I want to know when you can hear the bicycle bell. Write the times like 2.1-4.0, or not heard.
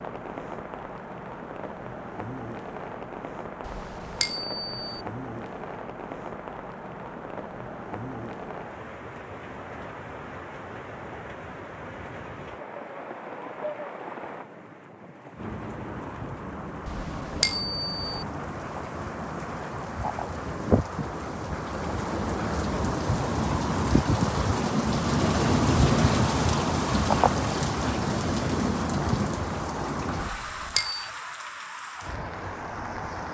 3.8-5.0, 16.9-18.2, 30.3-31.1.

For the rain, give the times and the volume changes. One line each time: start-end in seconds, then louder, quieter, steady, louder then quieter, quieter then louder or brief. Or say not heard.
0.0-33.2 louder.